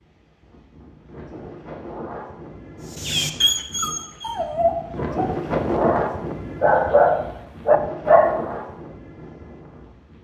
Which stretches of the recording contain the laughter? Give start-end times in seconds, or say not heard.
not heard.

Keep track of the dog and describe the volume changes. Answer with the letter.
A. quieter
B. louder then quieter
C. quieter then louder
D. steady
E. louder
E.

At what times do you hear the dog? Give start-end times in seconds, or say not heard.
3.0-8.4.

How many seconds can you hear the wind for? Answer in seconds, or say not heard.
10 s.